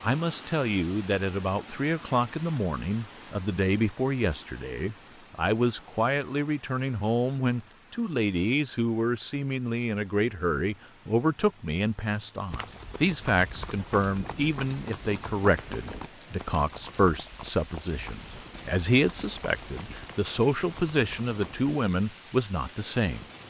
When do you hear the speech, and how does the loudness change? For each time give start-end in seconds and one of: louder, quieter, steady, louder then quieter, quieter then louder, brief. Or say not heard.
0.0-23.2 steady.